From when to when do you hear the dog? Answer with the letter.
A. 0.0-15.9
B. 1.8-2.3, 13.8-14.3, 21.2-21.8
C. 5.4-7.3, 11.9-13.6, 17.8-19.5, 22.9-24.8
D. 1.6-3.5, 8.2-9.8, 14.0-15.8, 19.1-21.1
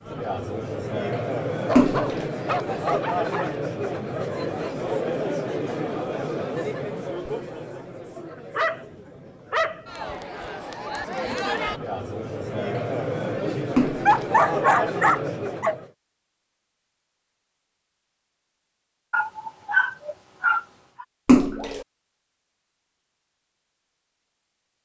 D.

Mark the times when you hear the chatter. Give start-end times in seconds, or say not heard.
0.0-15.9.